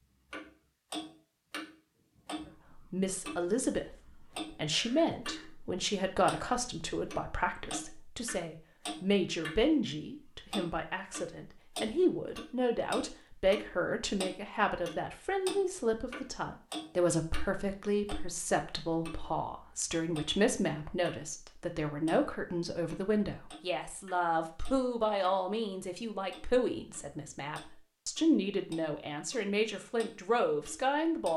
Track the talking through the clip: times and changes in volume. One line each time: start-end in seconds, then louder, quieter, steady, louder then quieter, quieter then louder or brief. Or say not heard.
2.8-31.3 steady.